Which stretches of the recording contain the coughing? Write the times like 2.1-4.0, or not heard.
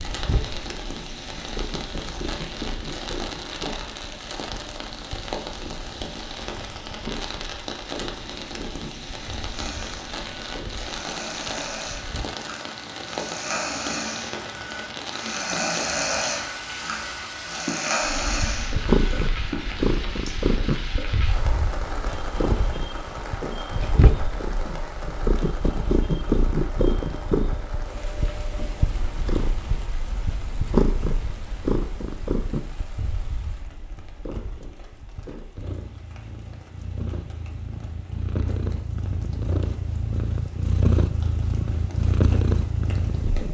not heard.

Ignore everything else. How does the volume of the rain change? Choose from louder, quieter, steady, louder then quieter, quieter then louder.
quieter.